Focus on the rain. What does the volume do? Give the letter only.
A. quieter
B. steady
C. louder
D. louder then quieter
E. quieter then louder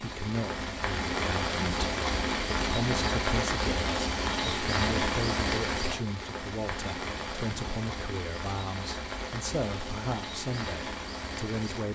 A.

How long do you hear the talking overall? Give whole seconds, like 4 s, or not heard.
12 s.